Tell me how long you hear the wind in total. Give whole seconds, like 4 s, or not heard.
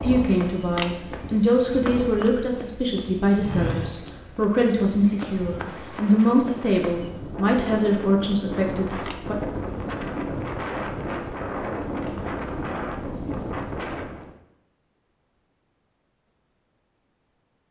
14 s.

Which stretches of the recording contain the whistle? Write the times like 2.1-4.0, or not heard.
not heard.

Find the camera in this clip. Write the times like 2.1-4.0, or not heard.
0.7-1.1, 8.9-9.3, 11.9-12.3.